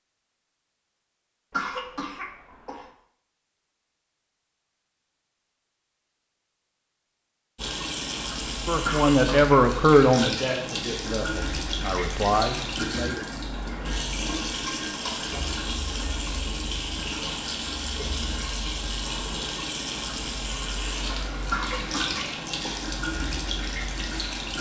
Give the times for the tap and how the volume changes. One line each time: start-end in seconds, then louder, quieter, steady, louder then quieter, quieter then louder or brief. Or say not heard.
7.5-24.5 steady.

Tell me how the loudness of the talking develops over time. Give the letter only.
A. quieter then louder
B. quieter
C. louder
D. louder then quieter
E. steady
A.